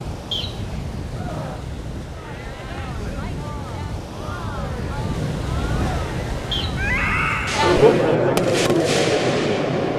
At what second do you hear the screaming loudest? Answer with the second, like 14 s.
7 s.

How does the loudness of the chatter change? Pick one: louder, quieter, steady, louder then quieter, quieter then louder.
louder.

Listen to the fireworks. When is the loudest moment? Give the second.
9 s.